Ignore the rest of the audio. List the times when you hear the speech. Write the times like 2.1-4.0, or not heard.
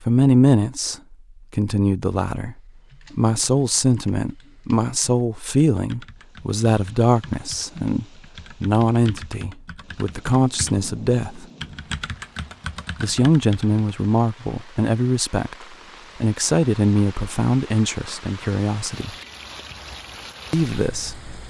0.1-11.4, 13.0-19.1, 20.5-21.3.